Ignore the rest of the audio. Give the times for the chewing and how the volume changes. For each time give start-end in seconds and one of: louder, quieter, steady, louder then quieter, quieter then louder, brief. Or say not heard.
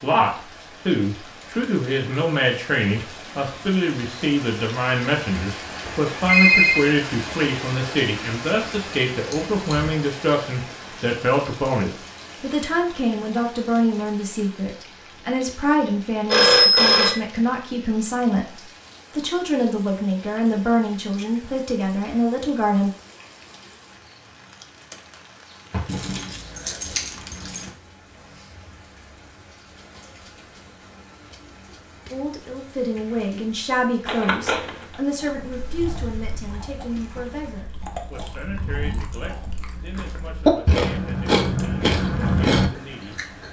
35.1-43.4 louder.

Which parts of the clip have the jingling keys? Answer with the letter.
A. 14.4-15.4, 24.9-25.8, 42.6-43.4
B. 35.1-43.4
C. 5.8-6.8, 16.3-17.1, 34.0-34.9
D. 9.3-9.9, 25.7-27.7
D.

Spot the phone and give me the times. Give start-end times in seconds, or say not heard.
5.8-6.8, 16.3-17.1, 34.0-34.9.